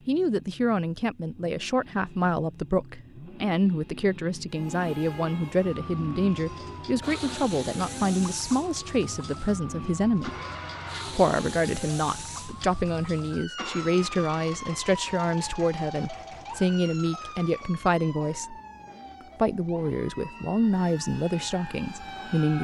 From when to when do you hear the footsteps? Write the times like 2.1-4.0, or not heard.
not heard.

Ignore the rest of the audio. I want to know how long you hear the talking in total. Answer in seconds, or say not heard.
21 s.